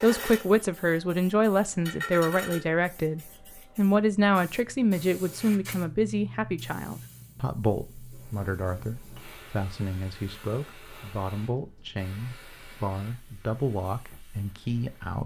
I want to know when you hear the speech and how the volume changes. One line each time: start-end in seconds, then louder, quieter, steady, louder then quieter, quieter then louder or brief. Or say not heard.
0.0-15.2 quieter.